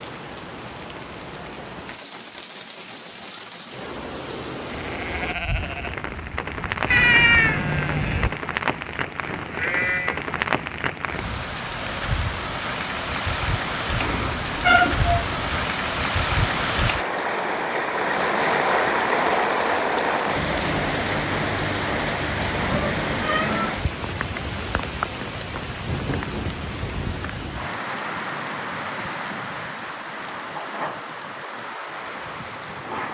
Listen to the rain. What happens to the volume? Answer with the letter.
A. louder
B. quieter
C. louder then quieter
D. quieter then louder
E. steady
C.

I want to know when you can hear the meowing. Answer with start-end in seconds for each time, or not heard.
6.9-8.4, 14.0-15.5, 22.5-23.6.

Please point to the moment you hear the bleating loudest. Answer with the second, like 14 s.
10 s.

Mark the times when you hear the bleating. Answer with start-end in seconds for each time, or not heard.
4.7-10.2.